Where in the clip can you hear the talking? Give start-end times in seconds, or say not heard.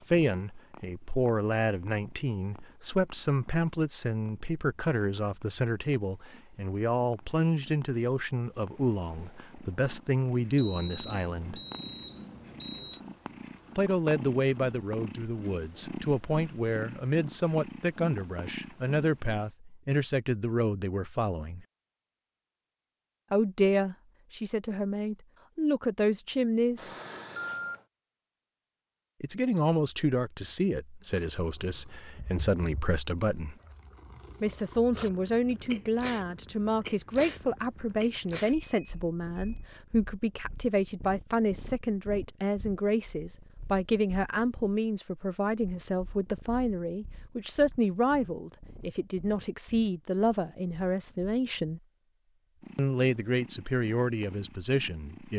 0.1-11.6, 13.8-21.6, 23.3-26.9, 29.2-33.5, 34.4-51.8, 52.8-55.3.